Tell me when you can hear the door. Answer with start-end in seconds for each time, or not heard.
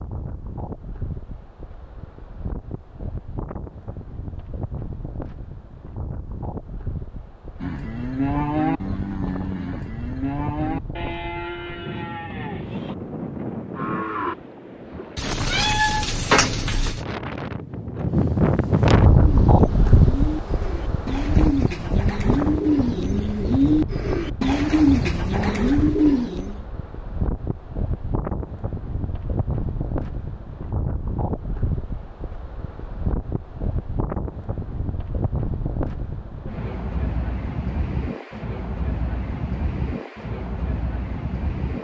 not heard.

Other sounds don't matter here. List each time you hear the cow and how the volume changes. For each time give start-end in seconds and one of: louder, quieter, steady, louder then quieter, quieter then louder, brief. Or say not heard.
7.6-14.3 quieter.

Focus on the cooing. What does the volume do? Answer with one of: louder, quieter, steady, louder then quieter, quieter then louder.
louder.